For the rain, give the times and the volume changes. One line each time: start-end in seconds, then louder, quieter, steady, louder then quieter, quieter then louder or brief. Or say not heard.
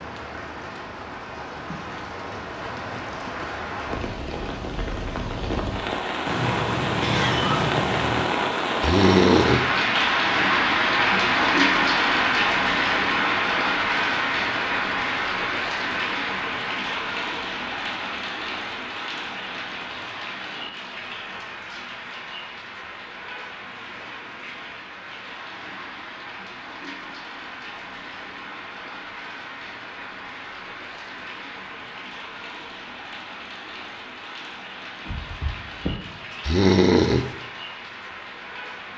0.0-38.9 louder then quieter.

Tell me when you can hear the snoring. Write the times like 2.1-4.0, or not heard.
8.8-9.7, 36.5-37.3.